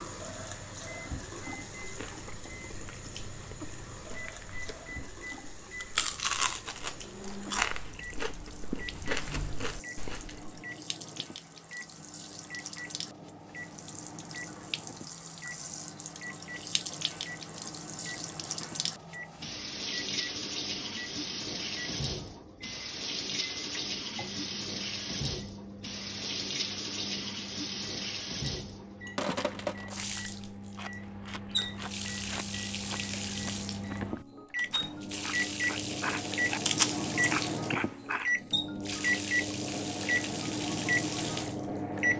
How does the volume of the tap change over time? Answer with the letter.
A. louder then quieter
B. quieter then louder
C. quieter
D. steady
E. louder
E.